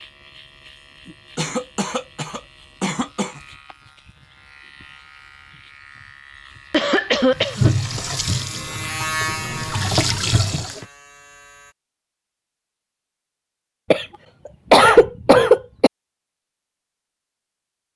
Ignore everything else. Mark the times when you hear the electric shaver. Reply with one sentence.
The electric shaver can be heard from 0.0 to 11.8 s.